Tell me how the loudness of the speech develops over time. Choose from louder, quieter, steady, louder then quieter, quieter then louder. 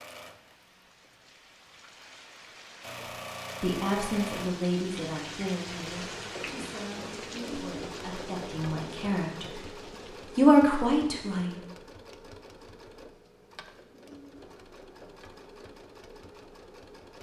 quieter then louder.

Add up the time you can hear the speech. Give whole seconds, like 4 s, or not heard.
8 s.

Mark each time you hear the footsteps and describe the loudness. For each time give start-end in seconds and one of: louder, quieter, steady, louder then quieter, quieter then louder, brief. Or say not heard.
not heard.